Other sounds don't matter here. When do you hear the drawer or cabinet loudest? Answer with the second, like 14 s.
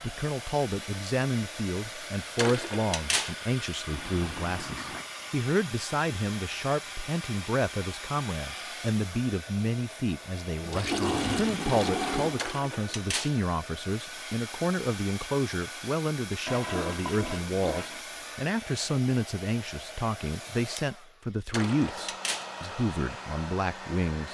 3 s.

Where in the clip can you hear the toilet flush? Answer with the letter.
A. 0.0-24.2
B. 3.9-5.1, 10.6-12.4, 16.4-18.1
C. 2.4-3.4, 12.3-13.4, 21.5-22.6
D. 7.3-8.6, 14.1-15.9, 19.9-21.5
B.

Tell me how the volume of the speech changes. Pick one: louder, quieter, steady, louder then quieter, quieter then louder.
steady.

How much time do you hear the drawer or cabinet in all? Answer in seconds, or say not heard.
3 s.